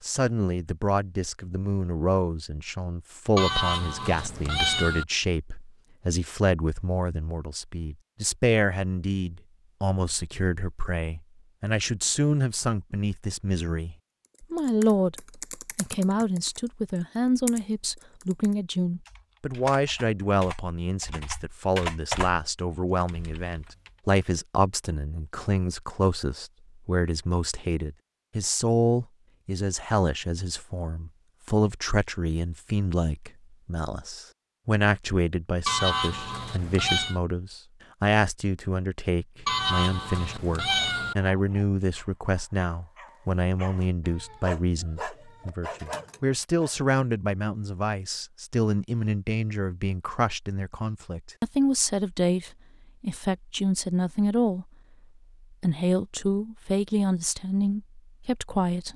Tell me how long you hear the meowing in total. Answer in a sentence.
The meowing can be heard for 5 seconds in total.